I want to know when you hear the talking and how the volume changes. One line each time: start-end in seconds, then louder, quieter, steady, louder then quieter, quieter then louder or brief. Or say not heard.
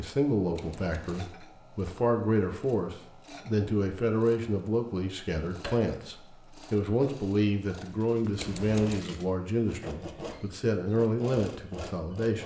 0.0-12.4 steady.